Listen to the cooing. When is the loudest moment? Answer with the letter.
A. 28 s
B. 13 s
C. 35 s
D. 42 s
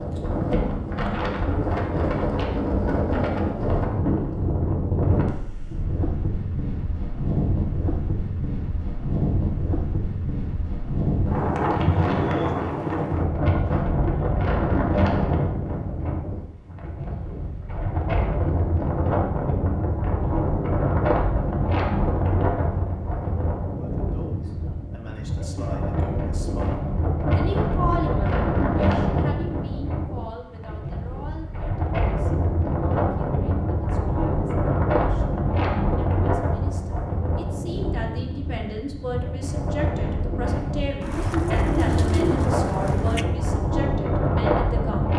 D.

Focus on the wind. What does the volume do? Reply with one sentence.
The volume of the wind stays about the same.